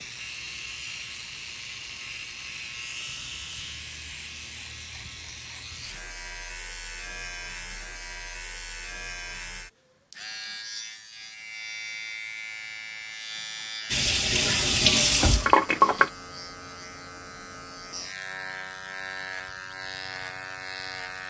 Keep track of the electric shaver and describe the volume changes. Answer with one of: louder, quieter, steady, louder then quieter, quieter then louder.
steady.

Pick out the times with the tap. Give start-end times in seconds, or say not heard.
13.9-16.1.